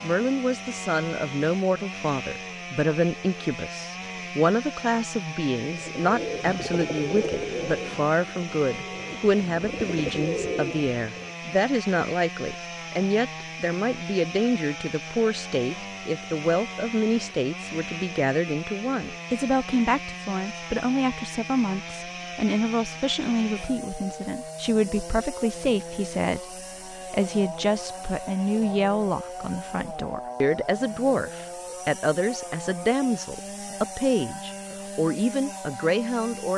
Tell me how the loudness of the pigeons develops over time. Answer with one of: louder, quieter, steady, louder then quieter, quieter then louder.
quieter then louder.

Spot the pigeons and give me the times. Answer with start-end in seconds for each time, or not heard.
5.7-11.3.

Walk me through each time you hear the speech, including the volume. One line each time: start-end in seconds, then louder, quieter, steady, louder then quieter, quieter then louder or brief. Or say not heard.
0.0-36.5 steady.